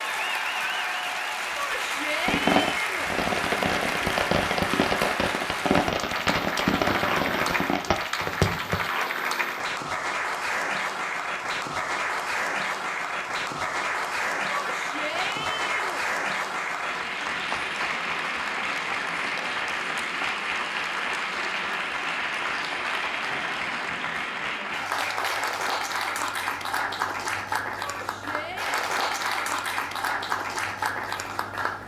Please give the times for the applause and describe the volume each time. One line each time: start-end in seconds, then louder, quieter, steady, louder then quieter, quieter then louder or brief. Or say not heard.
0.0-31.8 steady.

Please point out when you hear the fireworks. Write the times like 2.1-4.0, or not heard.
2.2-8.8.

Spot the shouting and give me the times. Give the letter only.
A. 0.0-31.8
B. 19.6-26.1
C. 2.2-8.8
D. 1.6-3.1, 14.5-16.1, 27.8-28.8
D.